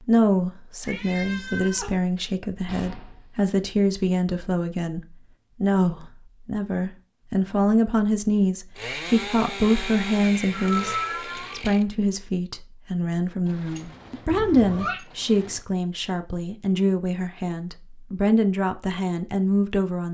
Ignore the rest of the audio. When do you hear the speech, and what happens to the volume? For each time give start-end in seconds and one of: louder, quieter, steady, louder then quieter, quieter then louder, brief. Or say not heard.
0.1-20.0 steady.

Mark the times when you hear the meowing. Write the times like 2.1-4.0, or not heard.
0.8-1.9, 10.5-11.6, 14.3-15.0.